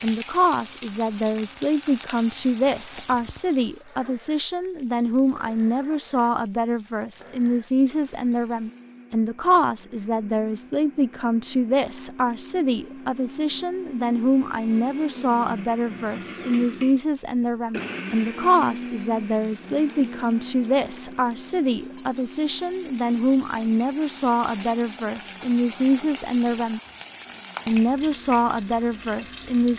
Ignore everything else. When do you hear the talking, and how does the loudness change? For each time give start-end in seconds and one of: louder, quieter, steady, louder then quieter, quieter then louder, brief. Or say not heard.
0.0-26.8 steady
27.6-29.7 brief.